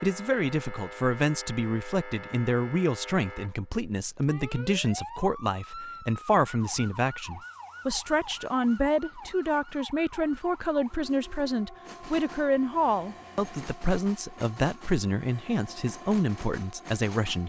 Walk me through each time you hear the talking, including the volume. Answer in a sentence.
You can hear the talking from 0.0 to 17.4 s, at a steady volume.